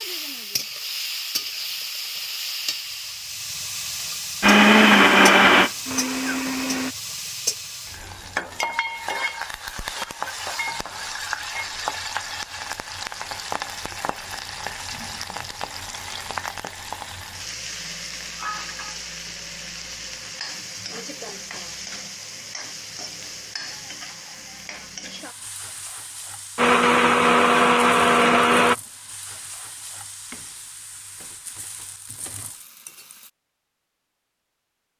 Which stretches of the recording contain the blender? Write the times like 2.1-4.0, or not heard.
4.4-7.0, 26.6-28.8.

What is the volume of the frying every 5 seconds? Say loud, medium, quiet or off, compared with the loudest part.
loud, loud, loud, loud, medium, medium, quiet.